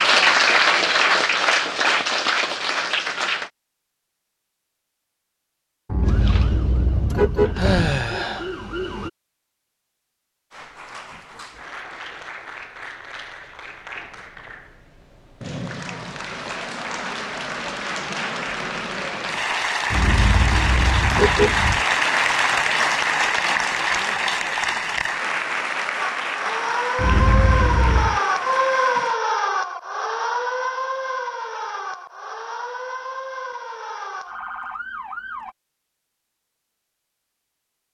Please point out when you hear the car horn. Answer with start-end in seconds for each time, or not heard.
5.8-7.8, 19.9-21.9, 26.9-28.2.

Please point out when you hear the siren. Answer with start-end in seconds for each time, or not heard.
6.0-9.1, 25.9-35.5.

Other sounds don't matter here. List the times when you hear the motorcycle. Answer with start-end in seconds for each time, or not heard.
not heard.